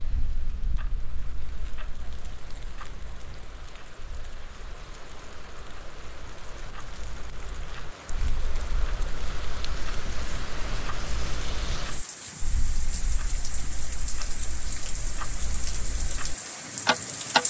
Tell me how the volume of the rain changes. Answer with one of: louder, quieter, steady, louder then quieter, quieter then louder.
louder.